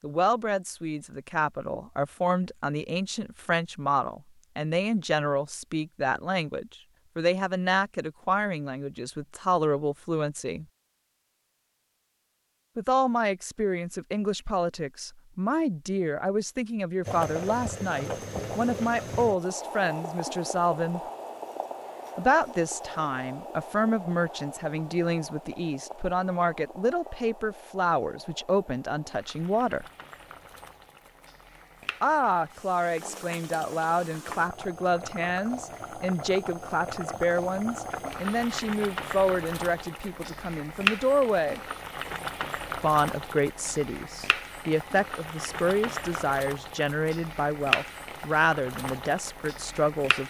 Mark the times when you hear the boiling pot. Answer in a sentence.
The boiling pot can be heard from 17.1 to 50.2 s.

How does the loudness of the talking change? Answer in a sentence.
The loudness of the talking stays about the same.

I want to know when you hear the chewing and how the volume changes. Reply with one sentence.
The chewing can't be heard in this clip.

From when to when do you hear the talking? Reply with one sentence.
You can hear the talking from 0.0 to 10.7 s, from 12.8 to 21.0 s, from 22.1 to 29.9 s, from 32.0 to 41.6 s and from 42.8 to 50.2 s.